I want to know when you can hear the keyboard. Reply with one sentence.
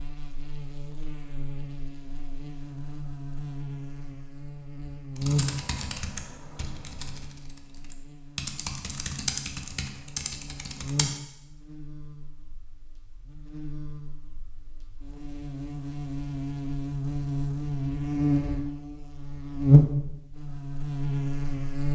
You can hear the keyboard from 5.2 to 11.1 s.